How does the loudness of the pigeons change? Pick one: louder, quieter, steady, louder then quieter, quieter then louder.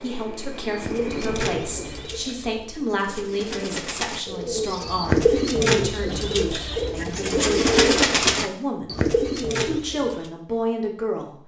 louder.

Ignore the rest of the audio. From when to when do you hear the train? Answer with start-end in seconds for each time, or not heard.
0.0-2.3.